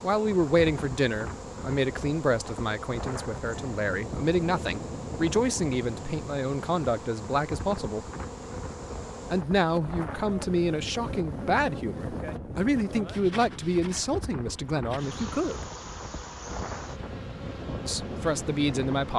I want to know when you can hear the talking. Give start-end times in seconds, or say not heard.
0.0-8.1, 9.3-15.7, 17.9-19.1.